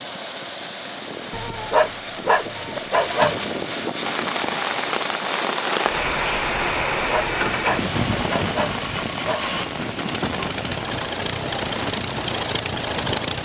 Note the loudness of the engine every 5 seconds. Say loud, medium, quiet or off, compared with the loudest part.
medium, medium, loud.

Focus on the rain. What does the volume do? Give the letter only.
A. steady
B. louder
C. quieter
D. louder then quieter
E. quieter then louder
C.